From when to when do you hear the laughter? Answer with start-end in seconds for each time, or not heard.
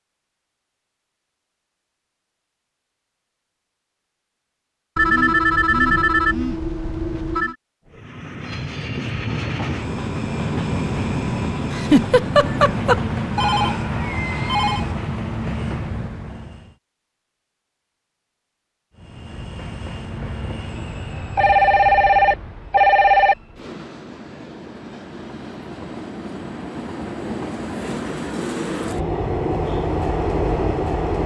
11.7-13.0.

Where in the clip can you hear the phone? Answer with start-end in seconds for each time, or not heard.
5.0-7.5, 13.3-14.8, 21.4-23.4.